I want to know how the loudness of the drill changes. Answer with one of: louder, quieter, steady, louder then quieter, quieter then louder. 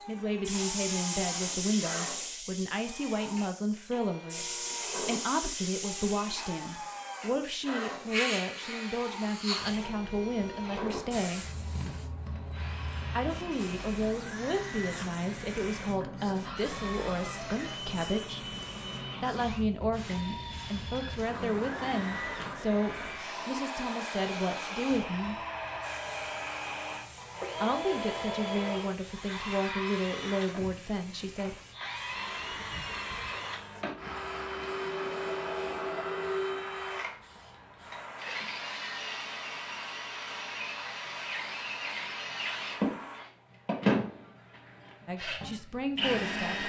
louder.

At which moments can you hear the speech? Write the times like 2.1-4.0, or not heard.
0.1-11.5, 13.2-18.4, 19.2-25.4, 27.6-31.6, 45.0-46.6.